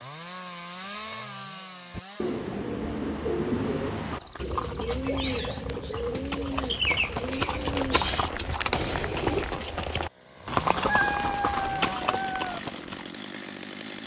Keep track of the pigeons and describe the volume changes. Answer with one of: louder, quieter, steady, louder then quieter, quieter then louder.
steady.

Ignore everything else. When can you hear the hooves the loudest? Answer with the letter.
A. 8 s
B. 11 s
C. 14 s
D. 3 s
B.